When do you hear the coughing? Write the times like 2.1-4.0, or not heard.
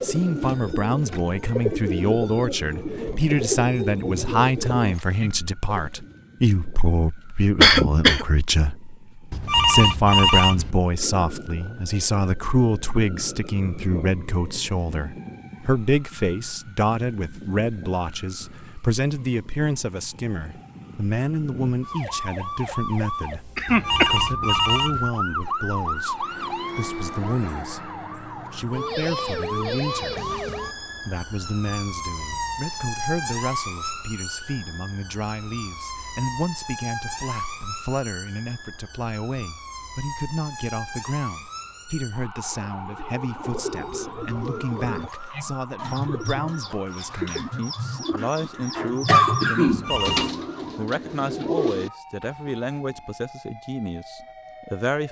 7.6-8.2, 23.6-24.6, 49.0-50.0.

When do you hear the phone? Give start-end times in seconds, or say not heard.
9.3-10.8, 23.6-25.1, 49.6-50.4.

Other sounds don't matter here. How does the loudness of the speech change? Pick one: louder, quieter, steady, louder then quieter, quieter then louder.
quieter.